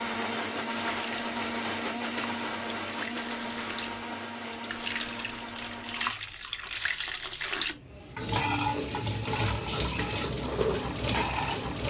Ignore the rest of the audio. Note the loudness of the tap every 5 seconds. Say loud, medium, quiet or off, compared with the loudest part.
medium, loud, loud.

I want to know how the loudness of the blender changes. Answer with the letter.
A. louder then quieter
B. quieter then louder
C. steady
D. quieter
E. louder
D.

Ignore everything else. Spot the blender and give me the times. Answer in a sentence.
The blender can be heard from 0.0 to 6.2 s.